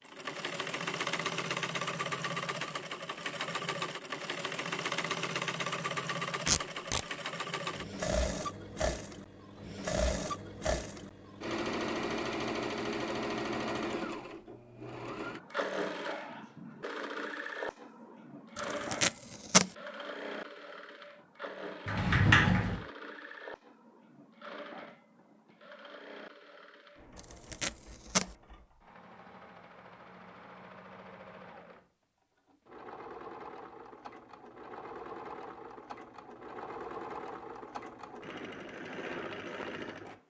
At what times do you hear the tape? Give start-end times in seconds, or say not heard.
6.5-7.0, 18.6-19.7, 27.1-28.3.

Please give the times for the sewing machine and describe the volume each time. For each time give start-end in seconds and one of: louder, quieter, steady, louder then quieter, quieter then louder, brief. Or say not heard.
0.0-40.2 quieter then louder.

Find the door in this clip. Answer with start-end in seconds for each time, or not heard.
21.9-22.9.